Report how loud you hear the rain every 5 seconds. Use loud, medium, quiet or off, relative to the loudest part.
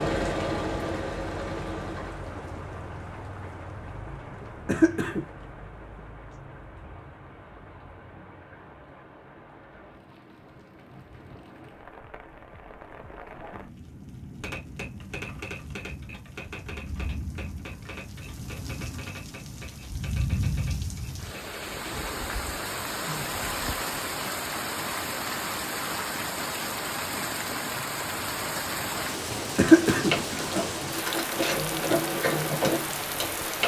medium, quiet, quiet, medium, loud, loud, loud.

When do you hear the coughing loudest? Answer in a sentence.
The volume of the coughing peaks at 30 seconds.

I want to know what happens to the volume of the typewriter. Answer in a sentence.
The loudness of the typewriter goes down.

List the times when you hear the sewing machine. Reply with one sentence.
The sewing machine can be heard from 0.0 to 2.2 s and from 29.9 to 33.6 s.